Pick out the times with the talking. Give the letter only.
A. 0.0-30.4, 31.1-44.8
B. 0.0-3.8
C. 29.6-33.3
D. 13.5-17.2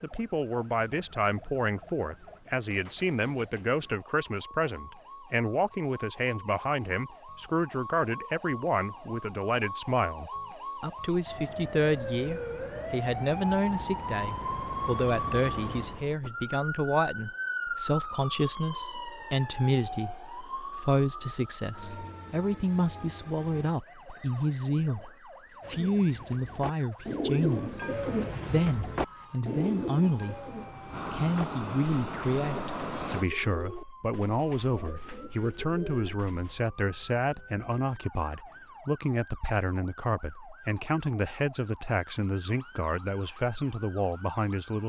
A.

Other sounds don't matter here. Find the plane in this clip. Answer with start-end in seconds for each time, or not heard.
29.6-33.3.